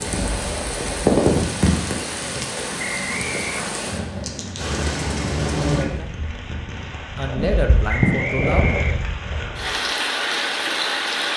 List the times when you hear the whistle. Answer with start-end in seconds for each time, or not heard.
2.8-3.6, 7.8-9.1.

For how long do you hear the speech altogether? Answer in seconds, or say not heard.
3 s.